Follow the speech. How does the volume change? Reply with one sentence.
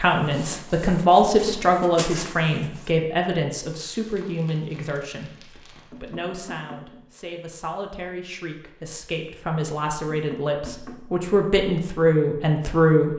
The loudness of the speech goes down, then up.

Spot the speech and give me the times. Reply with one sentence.
You can hear the speech from 0.0 to 13.1 s.